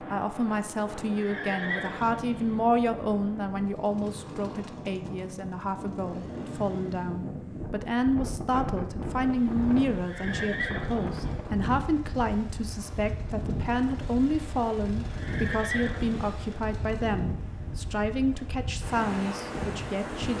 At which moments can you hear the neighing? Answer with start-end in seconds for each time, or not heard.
1.0-2.6, 9.9-11.2, 15.0-16.4.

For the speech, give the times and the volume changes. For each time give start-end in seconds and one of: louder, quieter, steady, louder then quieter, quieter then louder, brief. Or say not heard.
0.0-20.3 steady.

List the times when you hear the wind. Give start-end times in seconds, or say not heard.
0.0-20.3.